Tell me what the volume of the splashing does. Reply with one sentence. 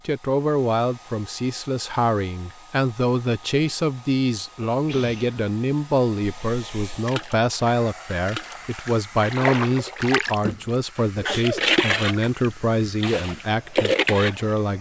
The volume of the splashing goes up.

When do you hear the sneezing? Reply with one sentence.
You can hear the sneezing from 4.7 to 5.5 s and from 10.4 to 11.6 s.